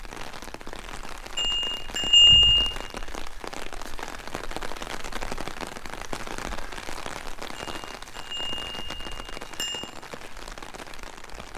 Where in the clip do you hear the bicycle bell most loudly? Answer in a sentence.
The volume of the bicycle bell peaks at 2 seconds.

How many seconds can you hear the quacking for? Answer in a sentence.
You can't hear the quacking here.